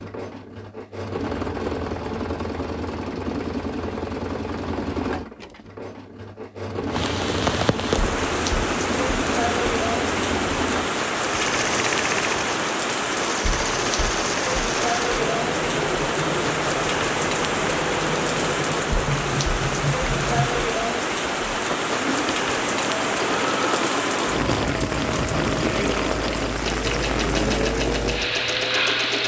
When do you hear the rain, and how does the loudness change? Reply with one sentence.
You can hear the rain from 6.9 to 29.2 s, at a steady volume.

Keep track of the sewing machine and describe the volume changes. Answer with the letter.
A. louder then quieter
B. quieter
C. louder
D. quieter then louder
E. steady
E.